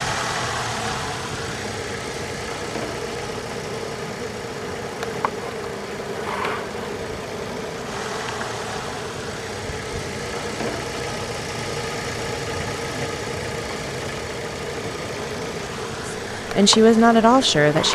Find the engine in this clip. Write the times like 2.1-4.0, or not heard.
0.0-17.9.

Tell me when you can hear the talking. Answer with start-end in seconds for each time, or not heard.
16.1-17.9.